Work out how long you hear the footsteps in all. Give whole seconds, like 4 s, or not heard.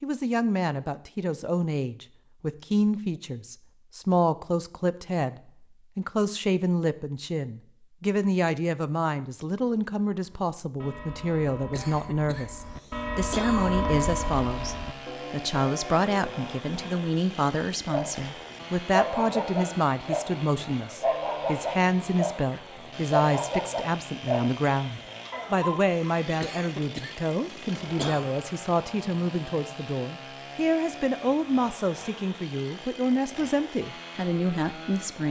not heard.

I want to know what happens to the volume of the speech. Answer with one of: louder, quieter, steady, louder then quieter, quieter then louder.
steady.